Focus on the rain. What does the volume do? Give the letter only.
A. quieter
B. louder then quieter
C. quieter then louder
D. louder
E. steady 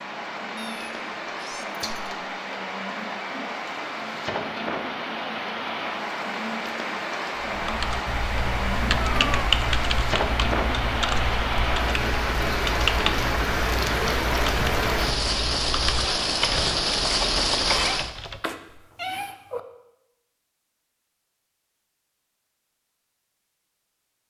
D.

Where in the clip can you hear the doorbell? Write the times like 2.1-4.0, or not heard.
not heard.